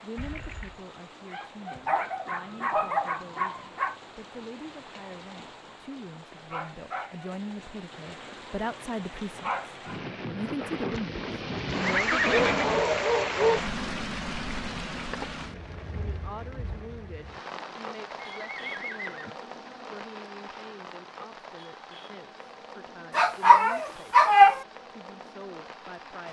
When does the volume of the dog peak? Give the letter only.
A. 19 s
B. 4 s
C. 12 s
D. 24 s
D.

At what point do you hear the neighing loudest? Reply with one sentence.
The volume of the neighing peaks at 12 seconds.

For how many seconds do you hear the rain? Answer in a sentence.
You can hear the rain for 26 seconds altogether.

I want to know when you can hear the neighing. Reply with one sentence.
You can hear the neighing from 0.1 to 0.8 s, from 10.9 to 12.8 s and from 18.4 to 19.4 s.